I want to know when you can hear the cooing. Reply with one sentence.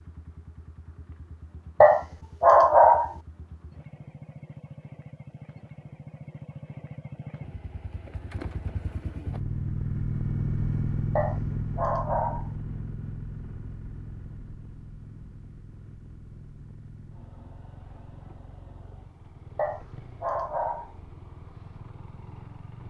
You can't hear the cooing here.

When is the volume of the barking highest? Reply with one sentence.
The volume of the barking peaks at 3 seconds.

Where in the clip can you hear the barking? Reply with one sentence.
You can hear the barking from 1.8 to 3.1 s, from 11.2 to 12.5 s and from 19.6 to 20.9 s.